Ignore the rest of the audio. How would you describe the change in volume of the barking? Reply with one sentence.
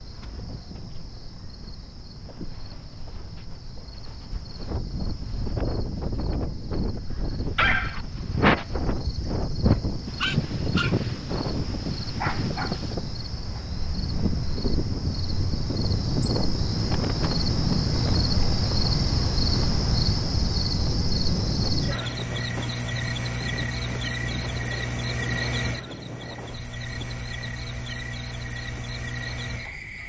The loudness of the barking goes down.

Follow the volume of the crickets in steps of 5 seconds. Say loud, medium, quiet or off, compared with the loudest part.
quiet, quiet, medium, loud, loud, medium.